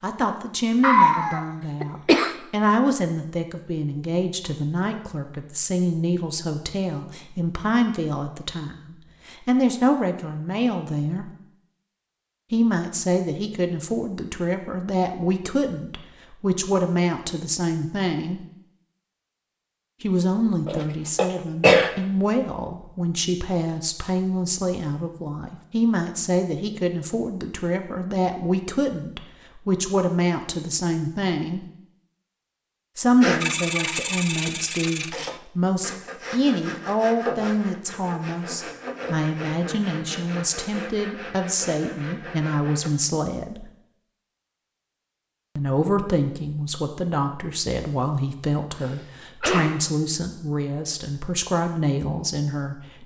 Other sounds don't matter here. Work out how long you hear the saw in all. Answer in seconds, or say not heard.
10 s.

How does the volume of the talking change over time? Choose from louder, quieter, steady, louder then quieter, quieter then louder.
steady.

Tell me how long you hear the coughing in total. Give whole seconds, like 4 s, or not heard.
4 s.